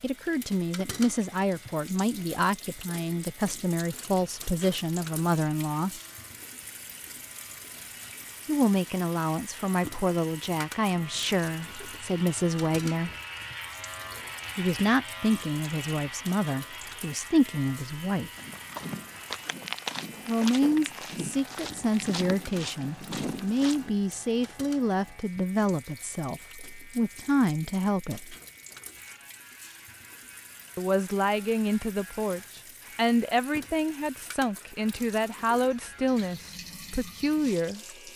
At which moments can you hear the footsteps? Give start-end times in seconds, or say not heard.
18.4-23.9.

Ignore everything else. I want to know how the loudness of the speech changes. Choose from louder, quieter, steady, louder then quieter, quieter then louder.
steady.